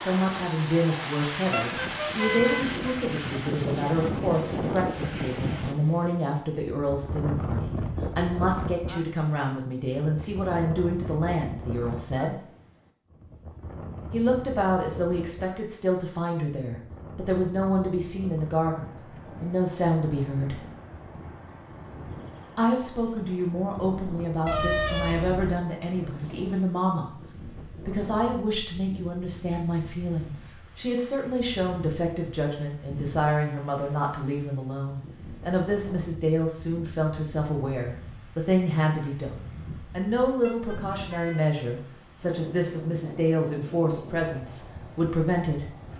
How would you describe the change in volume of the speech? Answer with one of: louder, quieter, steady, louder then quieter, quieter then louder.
steady.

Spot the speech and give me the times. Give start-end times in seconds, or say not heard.
0.1-12.3, 14.1-20.6, 22.6-27.1, 27.8-45.6.